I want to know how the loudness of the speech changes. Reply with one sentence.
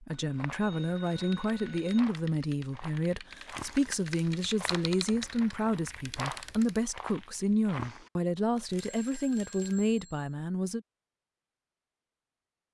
The loudness of the speech stays about the same.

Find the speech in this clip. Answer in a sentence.
You can hear the speech from 0.0 to 10.8 s.